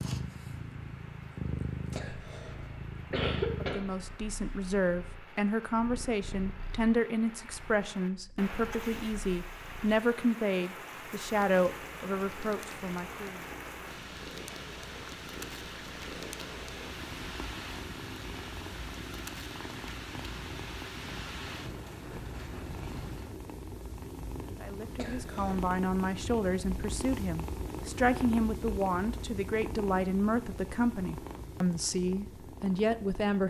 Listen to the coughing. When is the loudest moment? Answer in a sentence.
The volume of the coughing peaks at 3 seconds.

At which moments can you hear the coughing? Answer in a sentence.
The coughing can be heard from 1.9 to 3.9 s and from 24.9 to 25.7 s.